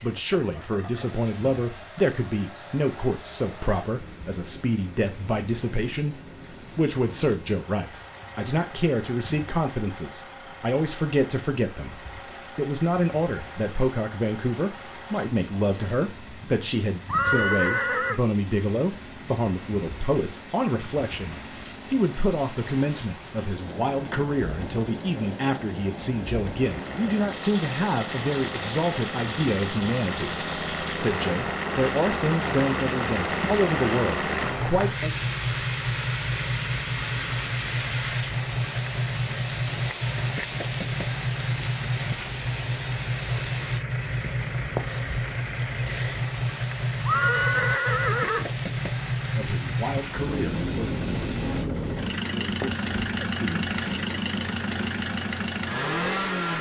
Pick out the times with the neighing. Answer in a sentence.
The neighing can be heard from 17.1 to 18.2 s and from 47.0 to 48.5 s.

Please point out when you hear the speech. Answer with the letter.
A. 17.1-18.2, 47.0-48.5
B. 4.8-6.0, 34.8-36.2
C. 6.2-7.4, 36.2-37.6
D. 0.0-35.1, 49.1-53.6
D.